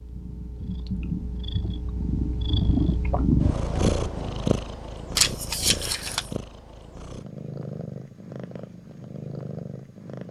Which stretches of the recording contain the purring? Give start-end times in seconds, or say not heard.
0.0-10.2.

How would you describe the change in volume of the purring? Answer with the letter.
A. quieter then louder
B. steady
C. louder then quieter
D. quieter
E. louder
C.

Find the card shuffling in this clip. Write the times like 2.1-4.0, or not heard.
5.2-6.3.